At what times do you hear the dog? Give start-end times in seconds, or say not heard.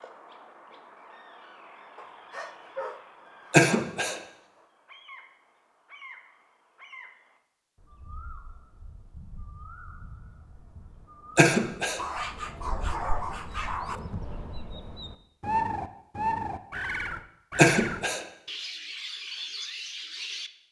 1.9-4.0, 11.9-14.0.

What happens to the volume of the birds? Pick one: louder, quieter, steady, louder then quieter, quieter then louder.
louder.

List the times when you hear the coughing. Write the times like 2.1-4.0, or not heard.
3.5-4.2, 11.3-12.0, 17.6-18.2.